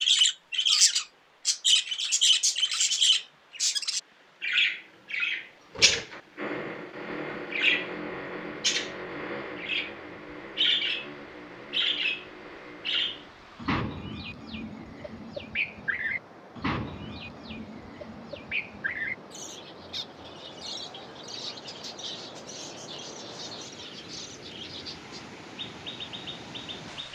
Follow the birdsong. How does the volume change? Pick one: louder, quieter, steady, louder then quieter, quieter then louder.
quieter.